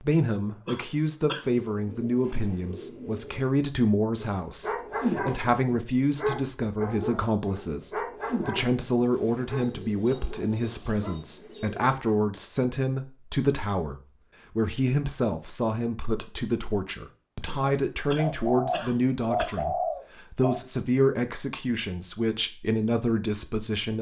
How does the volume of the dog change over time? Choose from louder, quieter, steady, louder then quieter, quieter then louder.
quieter.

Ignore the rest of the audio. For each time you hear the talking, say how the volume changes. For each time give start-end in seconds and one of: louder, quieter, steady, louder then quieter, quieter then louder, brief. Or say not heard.
0.0-23.9 steady.